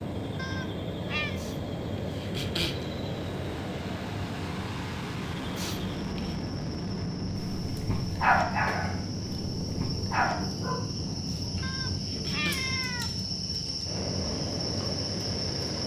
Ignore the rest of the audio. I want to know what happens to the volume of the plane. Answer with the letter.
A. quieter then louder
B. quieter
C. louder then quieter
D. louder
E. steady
E.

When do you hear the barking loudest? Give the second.
8 s.